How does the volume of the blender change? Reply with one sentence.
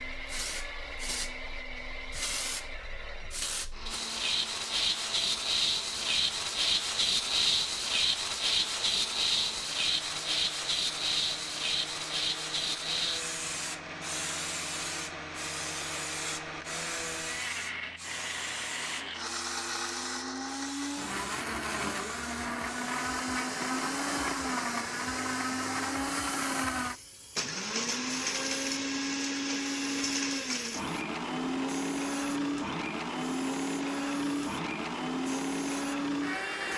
The loudness of the blender goes up.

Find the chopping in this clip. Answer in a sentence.
The chopping can't be heard in this clip.